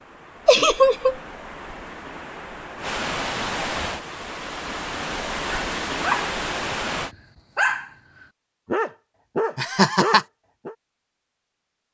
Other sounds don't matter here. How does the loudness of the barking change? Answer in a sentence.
The volume of the barking goes up.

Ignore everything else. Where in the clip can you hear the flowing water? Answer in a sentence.
You can hear the flowing water from 0.0 to 7.2 s.